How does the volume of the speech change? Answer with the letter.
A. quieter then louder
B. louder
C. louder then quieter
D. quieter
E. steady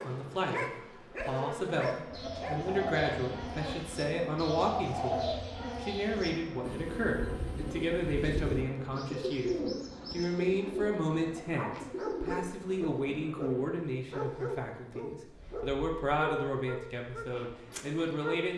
E.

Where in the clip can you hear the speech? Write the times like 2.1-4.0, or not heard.
0.0-18.5.